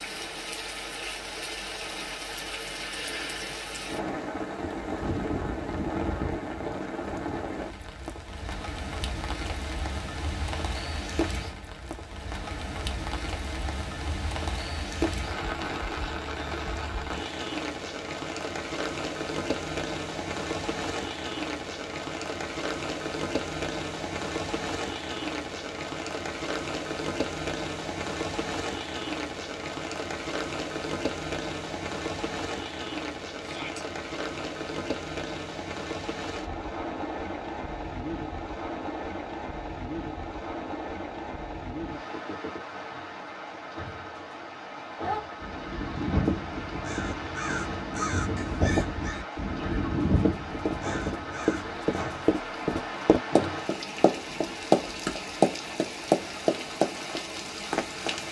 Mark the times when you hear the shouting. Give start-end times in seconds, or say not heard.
33.4-33.9.